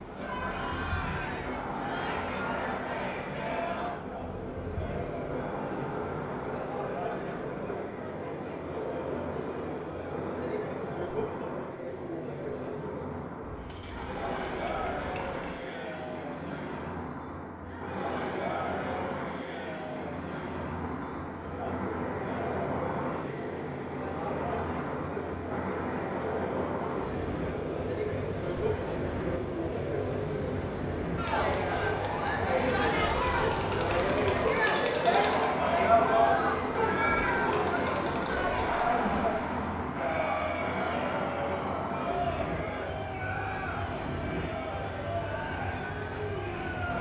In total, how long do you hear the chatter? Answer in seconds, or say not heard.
47 s.